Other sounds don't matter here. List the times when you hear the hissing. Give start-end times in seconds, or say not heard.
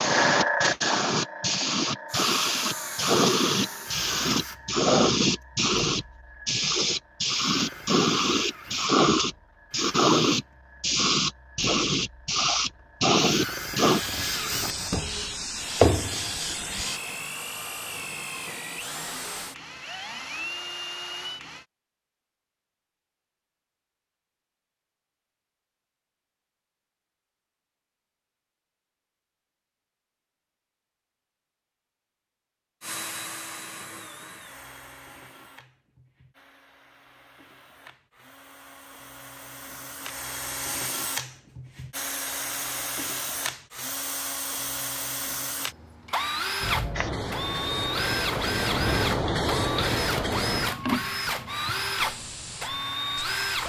0.0-17.0, 46.6-53.6.